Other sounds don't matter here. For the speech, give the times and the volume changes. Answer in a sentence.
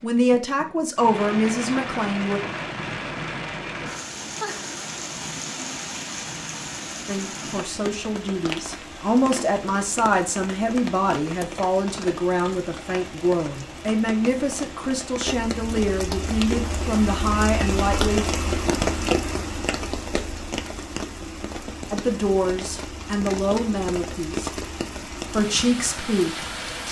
The speech can be heard briefly from 0.0 to 2.4 s; from 7.0 to 18.2 s, at a steady volume; briefly from 21.9 to 24.5 s; and briefly from 25.3 to 26.4 s.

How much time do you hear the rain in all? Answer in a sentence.
You can hear the rain for 27 seconds altogether.